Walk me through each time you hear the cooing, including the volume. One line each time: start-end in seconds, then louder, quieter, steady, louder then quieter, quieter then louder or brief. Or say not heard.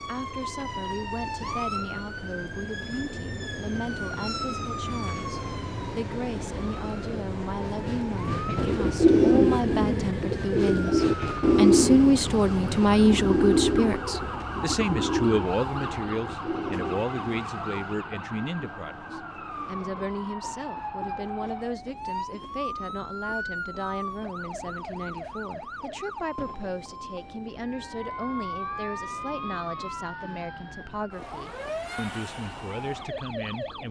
8.6-17.9 quieter.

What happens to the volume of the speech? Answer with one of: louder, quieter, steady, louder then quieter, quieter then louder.
louder then quieter.